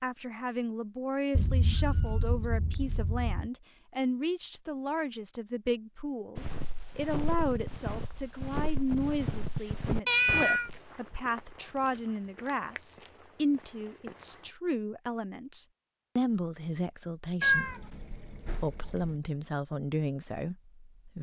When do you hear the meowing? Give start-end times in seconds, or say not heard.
1.4-3.5, 10.1-10.7, 17.4-19.1.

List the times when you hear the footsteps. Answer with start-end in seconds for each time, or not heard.
6.3-14.6.